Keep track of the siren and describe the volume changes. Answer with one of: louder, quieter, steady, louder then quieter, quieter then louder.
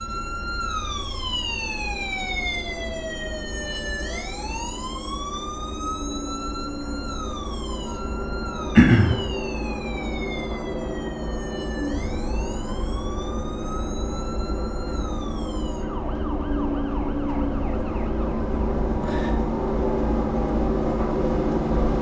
quieter.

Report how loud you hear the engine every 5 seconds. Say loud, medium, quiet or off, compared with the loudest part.
quiet, medium, medium, loud, loud.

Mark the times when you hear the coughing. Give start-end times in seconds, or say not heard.
8.8-9.2.